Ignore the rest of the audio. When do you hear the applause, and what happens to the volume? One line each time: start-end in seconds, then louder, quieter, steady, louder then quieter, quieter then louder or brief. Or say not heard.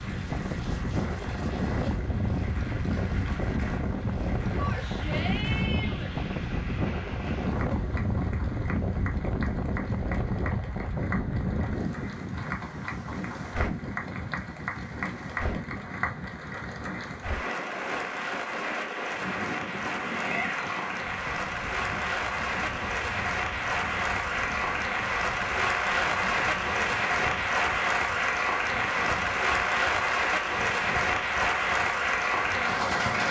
0.0-33.2 louder.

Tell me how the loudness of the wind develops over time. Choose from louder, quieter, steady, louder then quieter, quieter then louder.
quieter.